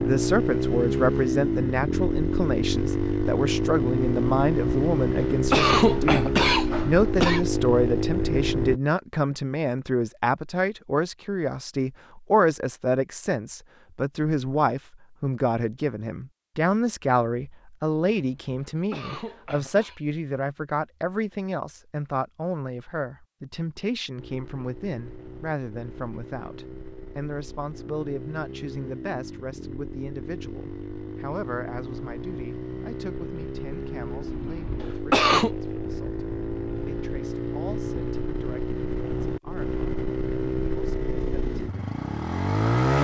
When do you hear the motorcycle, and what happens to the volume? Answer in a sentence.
You can hear the motorcycle from 0.0 to 8.8 s, at a steady volume; and from 24.1 to 42.9 s, getting louder.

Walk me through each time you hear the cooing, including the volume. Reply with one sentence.
You can't hear the cooing here.